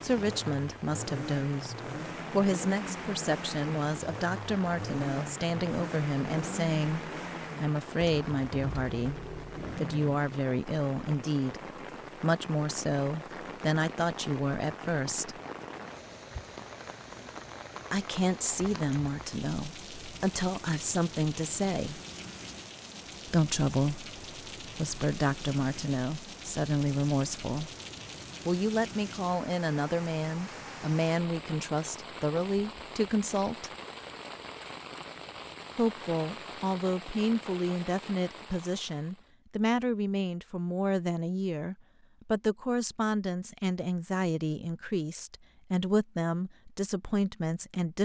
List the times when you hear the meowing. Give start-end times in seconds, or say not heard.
not heard.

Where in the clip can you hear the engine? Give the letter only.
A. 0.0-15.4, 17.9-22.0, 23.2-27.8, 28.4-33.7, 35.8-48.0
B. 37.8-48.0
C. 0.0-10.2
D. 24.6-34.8
C.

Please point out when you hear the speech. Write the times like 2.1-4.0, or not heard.
0.0-15.4, 17.9-22.0, 23.2-27.8, 28.4-33.7, 35.8-48.0.